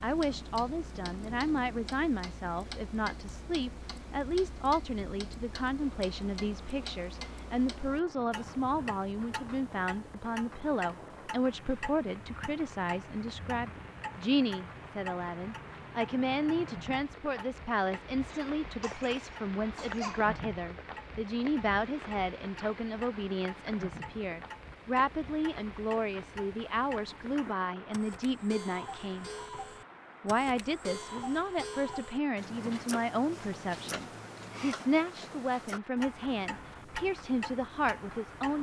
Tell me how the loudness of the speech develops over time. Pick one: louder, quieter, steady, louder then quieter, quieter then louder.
steady.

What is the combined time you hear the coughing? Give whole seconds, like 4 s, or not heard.
2 s.